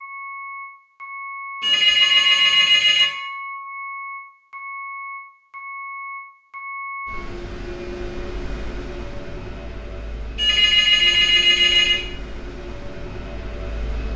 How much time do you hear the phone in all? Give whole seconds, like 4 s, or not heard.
3 s.